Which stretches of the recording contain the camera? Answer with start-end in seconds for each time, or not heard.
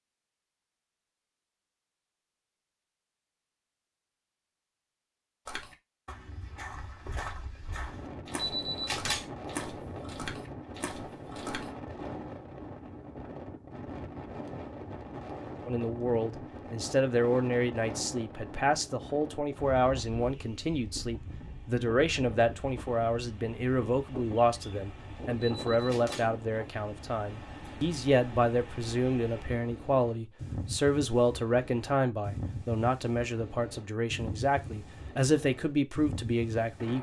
8.3-9.3, 25.4-26.3.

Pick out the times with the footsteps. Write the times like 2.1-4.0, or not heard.
5.5-11.7.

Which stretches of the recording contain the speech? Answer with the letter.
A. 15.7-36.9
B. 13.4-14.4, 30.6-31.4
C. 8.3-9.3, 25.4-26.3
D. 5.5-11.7
A.